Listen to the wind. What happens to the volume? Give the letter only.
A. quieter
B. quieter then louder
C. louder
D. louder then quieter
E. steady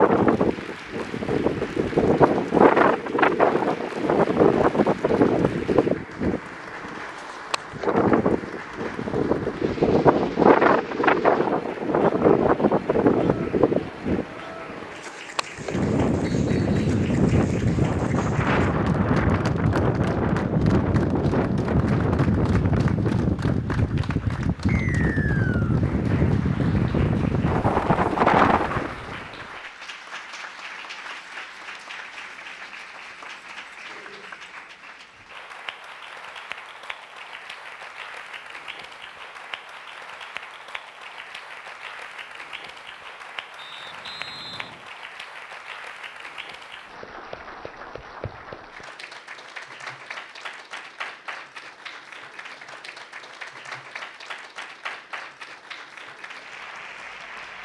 E.